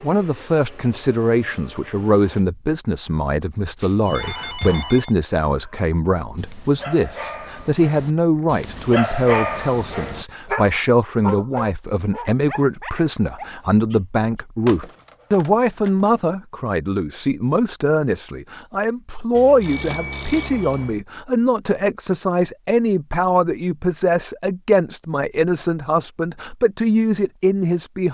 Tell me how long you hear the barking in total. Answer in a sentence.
You can hear the barking for 10 seconds altogether.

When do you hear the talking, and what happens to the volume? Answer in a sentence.
The talking can be heard from 0.0 to 28.0 s, at a steady volume.